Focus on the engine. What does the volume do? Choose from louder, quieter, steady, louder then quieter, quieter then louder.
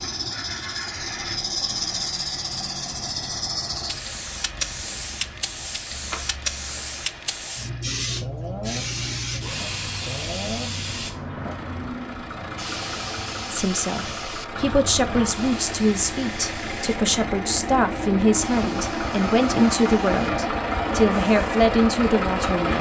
louder.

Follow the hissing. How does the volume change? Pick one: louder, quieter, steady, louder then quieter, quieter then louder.
quieter.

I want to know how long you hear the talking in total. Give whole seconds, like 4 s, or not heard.
9 s.